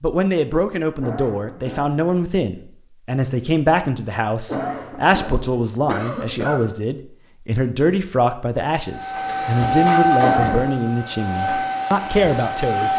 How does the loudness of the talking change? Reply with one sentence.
The volume of the talking stays about the same.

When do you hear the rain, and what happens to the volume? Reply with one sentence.
The rain can't be heard in this clip.